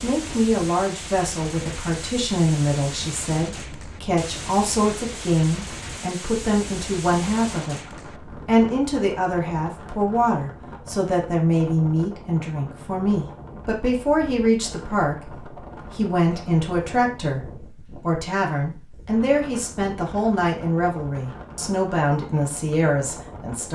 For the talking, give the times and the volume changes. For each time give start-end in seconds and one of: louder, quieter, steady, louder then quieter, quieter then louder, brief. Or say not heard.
0.0-23.7 steady.